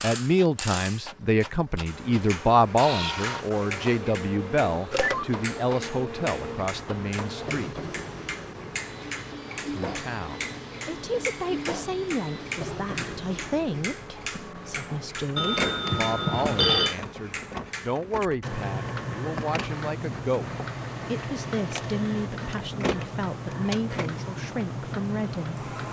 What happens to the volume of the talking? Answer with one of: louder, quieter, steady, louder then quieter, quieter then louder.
quieter.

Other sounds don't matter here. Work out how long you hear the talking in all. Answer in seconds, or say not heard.
24 s.